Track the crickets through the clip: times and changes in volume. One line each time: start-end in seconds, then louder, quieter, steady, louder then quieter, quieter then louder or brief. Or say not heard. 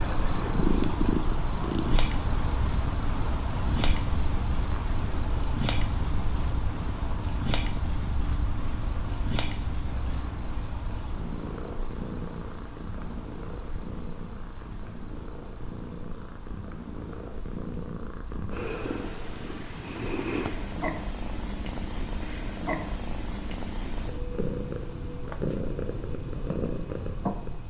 0.0-27.6 quieter.